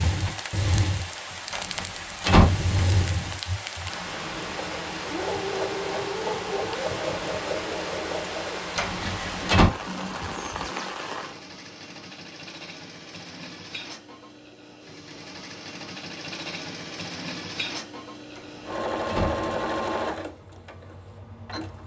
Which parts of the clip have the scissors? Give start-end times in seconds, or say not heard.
not heard.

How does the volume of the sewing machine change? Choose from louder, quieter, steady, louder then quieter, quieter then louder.
quieter then louder.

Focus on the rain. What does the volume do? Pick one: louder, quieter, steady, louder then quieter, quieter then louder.
steady.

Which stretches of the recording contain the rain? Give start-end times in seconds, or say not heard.
0.0-11.4.